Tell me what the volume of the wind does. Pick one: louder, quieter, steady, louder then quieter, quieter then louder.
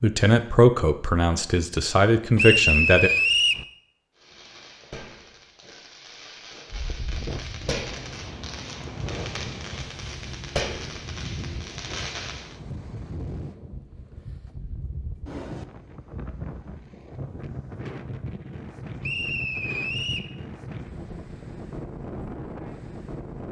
steady.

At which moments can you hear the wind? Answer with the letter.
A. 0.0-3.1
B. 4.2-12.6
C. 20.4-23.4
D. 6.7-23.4
D.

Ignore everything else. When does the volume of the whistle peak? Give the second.
3 s.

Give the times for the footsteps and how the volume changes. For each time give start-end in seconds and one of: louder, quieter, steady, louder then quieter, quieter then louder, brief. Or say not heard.
not heard.